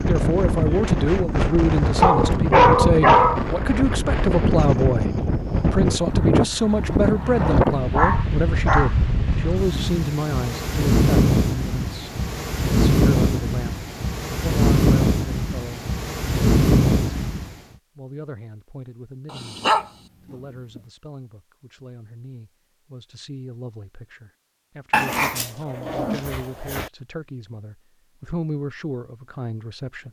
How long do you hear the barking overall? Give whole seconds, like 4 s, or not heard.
5 s.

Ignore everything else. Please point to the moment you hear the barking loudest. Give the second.
3 s.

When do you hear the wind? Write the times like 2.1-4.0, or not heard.
0.0-17.6.